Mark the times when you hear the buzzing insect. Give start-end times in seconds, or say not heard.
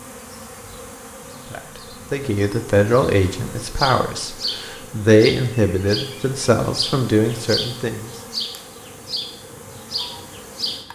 0.0-10.9.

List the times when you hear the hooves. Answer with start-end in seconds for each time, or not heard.
not heard.